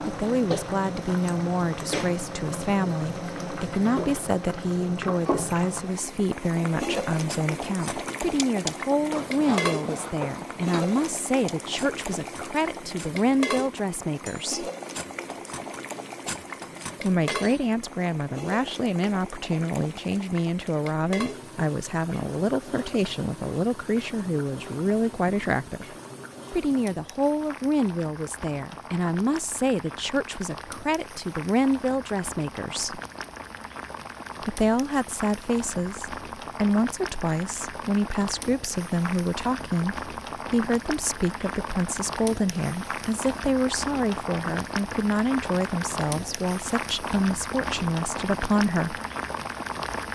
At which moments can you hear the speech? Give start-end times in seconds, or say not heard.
0.0-14.7, 17.0-25.9, 26.5-33.0, 34.4-49.0.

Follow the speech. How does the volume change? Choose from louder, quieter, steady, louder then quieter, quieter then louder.
steady.